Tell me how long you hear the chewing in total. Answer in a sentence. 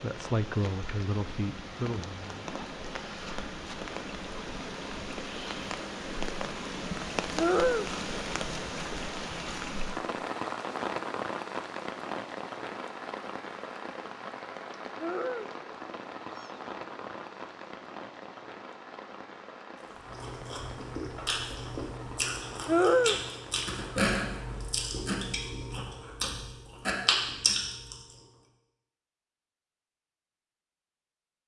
You can hear the chewing for 8 seconds altogether.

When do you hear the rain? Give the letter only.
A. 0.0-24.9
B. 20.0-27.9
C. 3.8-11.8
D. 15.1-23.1
A.